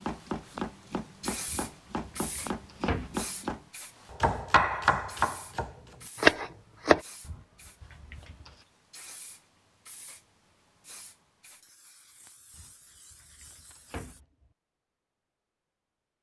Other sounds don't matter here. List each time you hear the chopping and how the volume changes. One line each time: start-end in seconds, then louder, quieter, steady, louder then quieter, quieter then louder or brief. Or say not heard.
0.0-7.0 louder.